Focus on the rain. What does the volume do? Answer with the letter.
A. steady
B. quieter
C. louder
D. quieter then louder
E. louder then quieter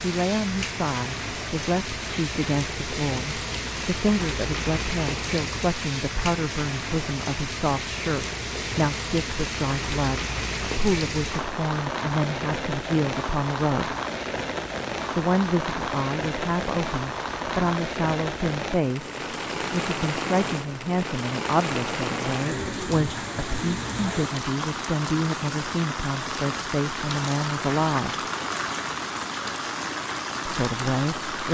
A.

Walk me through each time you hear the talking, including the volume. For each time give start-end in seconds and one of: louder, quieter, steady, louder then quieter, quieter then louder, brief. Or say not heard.
0.0-13.9 steady
15.2-28.1 steady
30.4-31.5 brief.